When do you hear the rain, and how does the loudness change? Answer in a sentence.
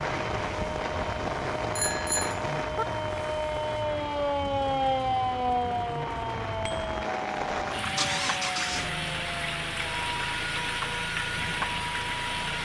You can hear the rain from 0.0 to 12.5 s, getting quieter then louder.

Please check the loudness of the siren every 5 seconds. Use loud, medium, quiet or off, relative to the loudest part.
loud, loud, medium.